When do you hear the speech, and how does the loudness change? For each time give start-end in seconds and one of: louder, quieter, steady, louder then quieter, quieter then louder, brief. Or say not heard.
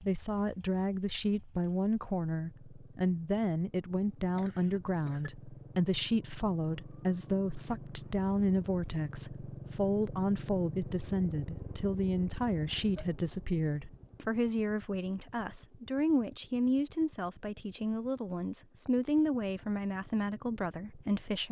0.0-21.4 steady.